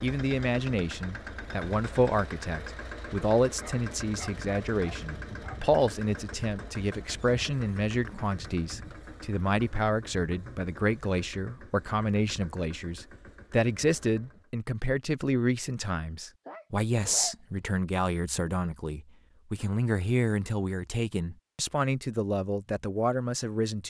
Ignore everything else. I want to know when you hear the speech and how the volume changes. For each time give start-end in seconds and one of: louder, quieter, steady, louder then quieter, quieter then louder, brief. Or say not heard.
0.0-23.8 steady.